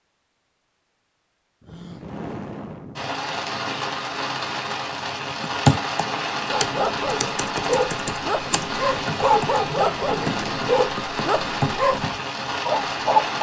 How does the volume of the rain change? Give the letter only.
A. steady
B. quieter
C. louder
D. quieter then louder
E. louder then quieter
A.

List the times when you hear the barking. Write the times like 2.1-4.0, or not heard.
6.5-13.3.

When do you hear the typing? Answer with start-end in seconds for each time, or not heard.
5.5-12.2.